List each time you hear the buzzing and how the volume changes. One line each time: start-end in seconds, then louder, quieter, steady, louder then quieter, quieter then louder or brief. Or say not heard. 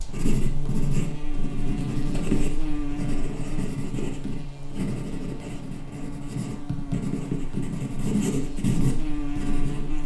0.0-10.0 quieter then louder.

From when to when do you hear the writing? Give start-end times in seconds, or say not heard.
0.0-10.0.